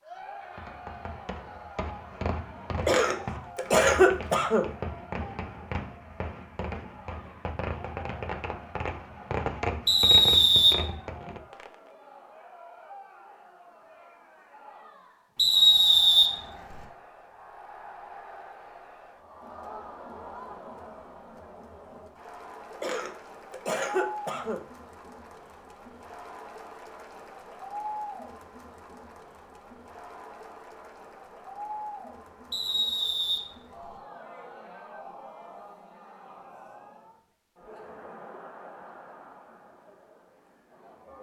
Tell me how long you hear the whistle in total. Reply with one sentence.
You can hear the whistle for 4 seconds altogether.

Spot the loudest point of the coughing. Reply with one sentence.
The loudest moment of the coughing is at 4 seconds.